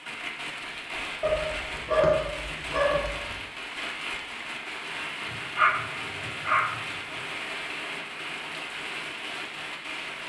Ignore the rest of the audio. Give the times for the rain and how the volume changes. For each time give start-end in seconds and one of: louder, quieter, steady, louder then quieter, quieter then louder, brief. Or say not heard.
0.0-10.2 steady.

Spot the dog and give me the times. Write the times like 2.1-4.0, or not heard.
1.2-3.4, 5.2-7.2.